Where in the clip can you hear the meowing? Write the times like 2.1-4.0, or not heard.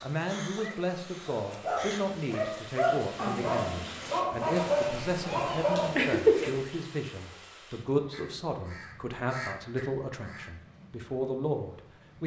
5.2-6.6.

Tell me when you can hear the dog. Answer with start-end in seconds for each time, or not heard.
0.6-6.0.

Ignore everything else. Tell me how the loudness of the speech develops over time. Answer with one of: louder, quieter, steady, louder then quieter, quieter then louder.
steady.